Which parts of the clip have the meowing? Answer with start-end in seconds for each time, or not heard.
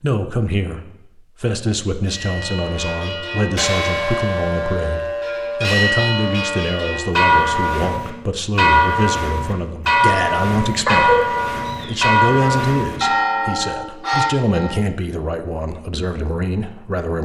10.8-12.1.